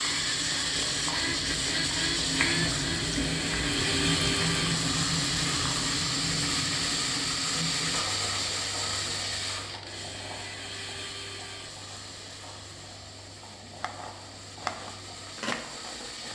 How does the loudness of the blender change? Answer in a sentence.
The volume of the blender goes down.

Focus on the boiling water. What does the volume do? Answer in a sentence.
The loudness of the boiling water goes down.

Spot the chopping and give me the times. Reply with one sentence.
The chopping can be heard from 13.4 to 16.3 s.